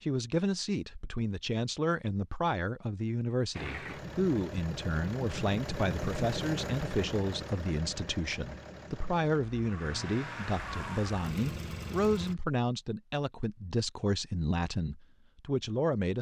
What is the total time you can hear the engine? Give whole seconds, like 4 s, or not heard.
9 s.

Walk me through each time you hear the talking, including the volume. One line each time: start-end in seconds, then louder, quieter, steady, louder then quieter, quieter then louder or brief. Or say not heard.
0.0-16.1 steady.